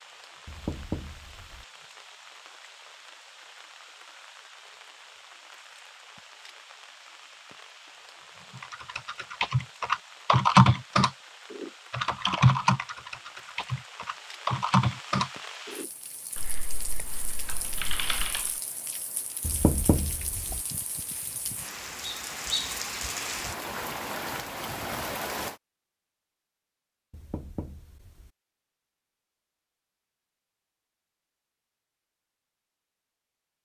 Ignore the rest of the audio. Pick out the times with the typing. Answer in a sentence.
The typing can be heard from 8.7 to 18.5 s.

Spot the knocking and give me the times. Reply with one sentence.
The knocking can be heard from 0.5 to 1.6 s, from 19.4 to 20.6 s and from 27.1 to 28.3 s.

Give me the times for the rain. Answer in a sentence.
You can hear the rain from 0.0 to 25.6 s.